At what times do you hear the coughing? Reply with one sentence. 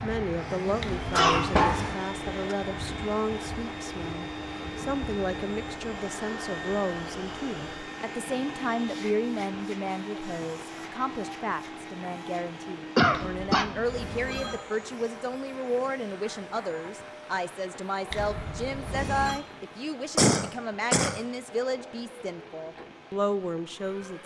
The coughing can be heard from 1.1 to 2.5 s, from 12.9 to 13.7 s and from 20.1 to 21.2 s.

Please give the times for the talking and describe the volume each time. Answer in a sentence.
The talking can be heard from 0.0 to 24.2 s, at a steady volume.